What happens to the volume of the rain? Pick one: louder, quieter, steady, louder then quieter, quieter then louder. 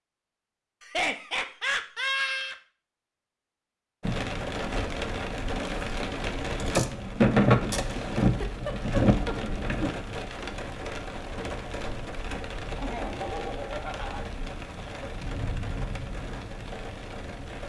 louder then quieter.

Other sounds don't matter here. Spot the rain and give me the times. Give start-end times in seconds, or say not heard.
4.0-17.6.